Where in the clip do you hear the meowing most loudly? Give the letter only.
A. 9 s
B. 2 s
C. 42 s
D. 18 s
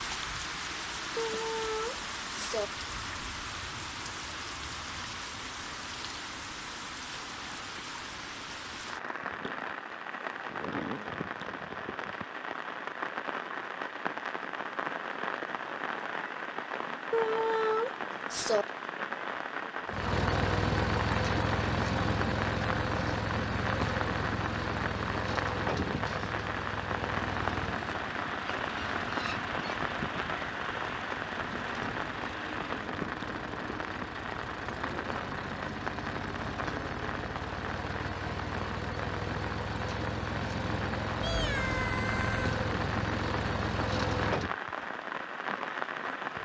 D.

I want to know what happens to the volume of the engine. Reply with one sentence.
The volume of the engine goes down, then up.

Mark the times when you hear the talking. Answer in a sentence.
You can't hear the talking here.